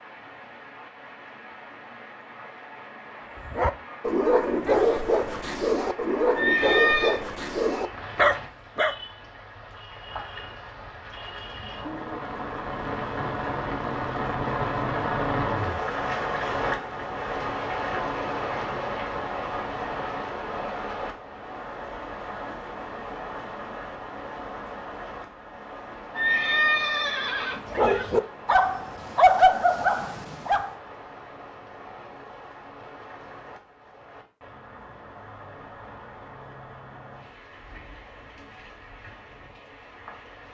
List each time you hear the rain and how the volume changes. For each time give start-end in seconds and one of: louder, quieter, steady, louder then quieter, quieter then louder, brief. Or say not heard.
0.0-40.4 louder then quieter.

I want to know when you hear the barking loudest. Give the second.
29 s.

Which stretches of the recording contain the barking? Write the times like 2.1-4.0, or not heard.
3.5-8.9, 27.7-30.7.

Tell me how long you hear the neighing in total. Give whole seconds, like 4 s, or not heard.
3 s.